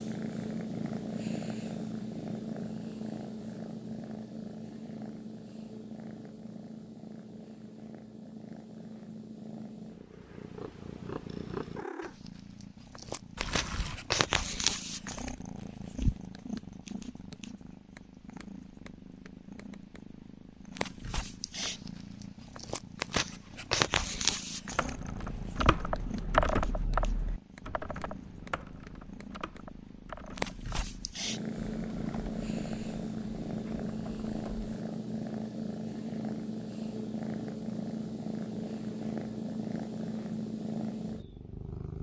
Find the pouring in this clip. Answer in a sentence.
You can hear the pouring from 13.3 to 14.0 s.